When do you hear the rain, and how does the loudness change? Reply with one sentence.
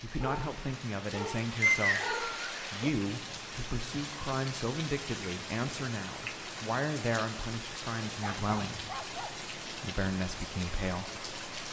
The rain can be heard from 0.0 to 11.6 s, at a steady volume.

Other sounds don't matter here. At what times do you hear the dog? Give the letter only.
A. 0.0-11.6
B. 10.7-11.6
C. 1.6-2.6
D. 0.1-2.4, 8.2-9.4
D.